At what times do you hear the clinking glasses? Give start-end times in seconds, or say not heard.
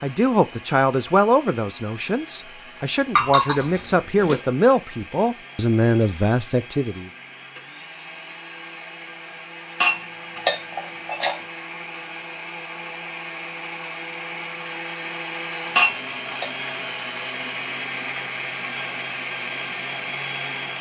3.1-4.3, 9.8-11.3, 15.8-16.4.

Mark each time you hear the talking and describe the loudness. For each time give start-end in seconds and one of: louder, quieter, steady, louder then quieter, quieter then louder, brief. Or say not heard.
0.0-7.1 quieter then louder.